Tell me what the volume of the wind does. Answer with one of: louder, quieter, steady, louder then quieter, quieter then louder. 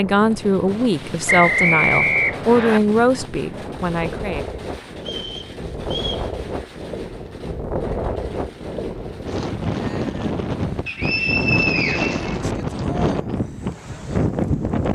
louder.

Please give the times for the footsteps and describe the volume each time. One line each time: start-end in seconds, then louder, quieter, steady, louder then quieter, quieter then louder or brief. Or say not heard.
not heard.